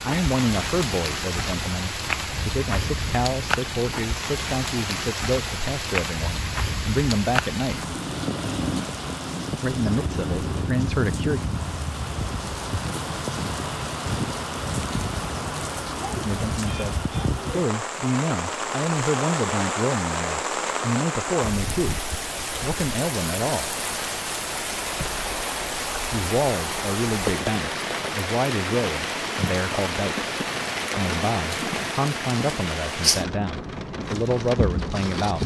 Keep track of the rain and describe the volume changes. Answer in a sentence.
The volume of the rain stays about the same.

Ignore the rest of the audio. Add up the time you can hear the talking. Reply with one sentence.
The talking can be heard for 26 seconds in total.